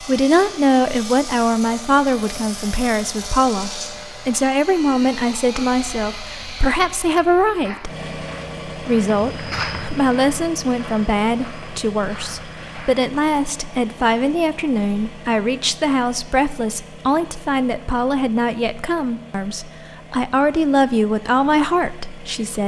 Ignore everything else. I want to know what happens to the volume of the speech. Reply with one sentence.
The volume of the speech stays about the same.